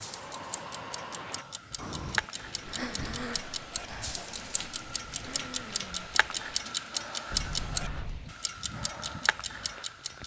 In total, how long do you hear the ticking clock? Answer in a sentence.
You can hear the ticking clock for 10 seconds altogether.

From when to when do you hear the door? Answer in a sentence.
The door can be heard from 2.4 to 3.4 s and from 7.3 to 8.3 s.